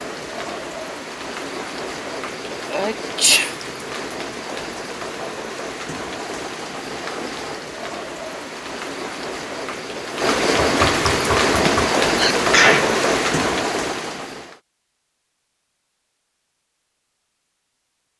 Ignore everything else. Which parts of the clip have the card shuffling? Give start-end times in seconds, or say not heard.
not heard.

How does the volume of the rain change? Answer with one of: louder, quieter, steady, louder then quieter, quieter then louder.
louder.